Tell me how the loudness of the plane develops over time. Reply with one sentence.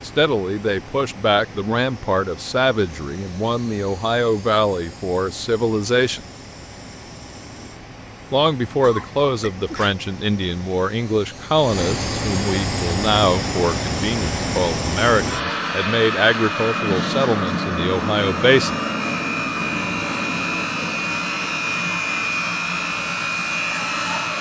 The loudness of the plane goes up.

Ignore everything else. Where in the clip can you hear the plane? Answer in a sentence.
The plane can be heard from 0.0 to 24.3 s.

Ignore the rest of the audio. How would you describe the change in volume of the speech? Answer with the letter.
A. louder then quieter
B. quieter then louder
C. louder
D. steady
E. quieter
D.